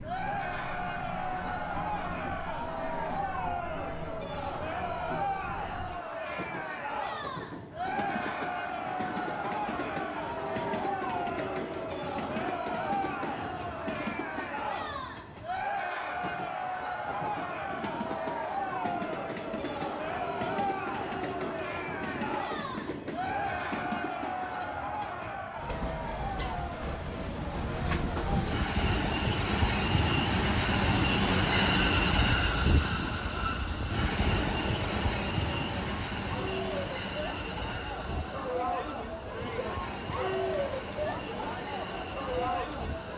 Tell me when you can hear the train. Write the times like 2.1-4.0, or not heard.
0.0-43.1.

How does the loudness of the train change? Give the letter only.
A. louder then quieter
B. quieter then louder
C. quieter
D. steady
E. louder
A.